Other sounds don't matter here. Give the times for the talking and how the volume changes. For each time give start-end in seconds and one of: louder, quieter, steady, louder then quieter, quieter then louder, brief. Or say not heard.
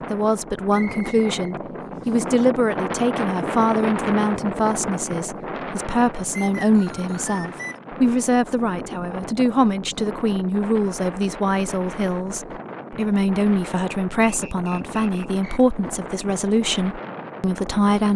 0.1-18.1 steady.